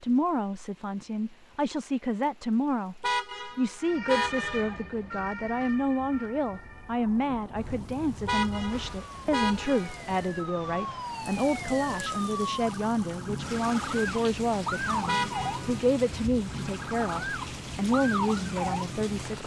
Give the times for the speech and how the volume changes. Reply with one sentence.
You can hear the speech from 0.0 to 19.4 s, at a steady volume.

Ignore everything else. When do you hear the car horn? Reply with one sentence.
The car horn can be heard from 3.0 to 4.8 s, from 8.2 to 10.0 s and from 15.1 to 15.8 s.